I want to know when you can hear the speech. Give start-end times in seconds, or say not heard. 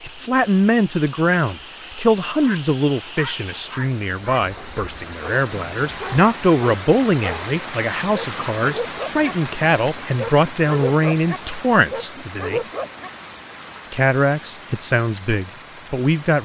0.0-12.6, 13.9-16.4.